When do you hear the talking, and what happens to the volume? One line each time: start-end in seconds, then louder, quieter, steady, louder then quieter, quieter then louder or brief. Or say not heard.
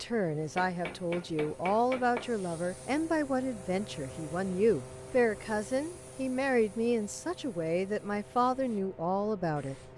0.0-9.9 steady.